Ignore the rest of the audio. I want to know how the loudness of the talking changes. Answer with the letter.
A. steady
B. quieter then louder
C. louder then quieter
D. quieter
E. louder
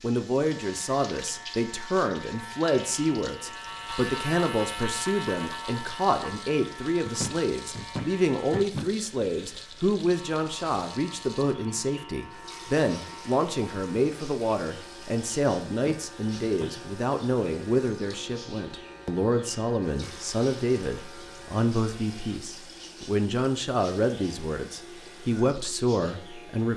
A.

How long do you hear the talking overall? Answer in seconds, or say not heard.
27 s.